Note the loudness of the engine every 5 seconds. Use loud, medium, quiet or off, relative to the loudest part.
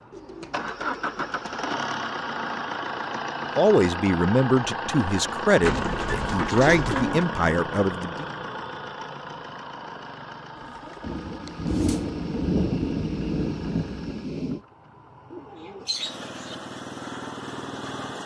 loud, loud, quiet, medium.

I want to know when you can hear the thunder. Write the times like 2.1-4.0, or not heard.
11.0-14.6.